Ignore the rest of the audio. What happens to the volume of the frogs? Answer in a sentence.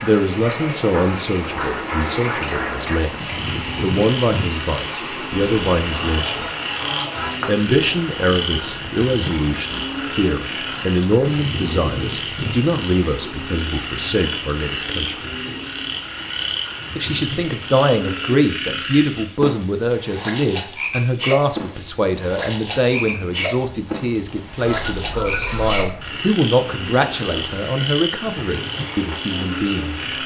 The loudness of the frogs stays about the same.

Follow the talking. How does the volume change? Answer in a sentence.
The loudness of the talking stays about the same.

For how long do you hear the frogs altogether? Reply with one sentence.
The frogs can be heard for 30 seconds in total.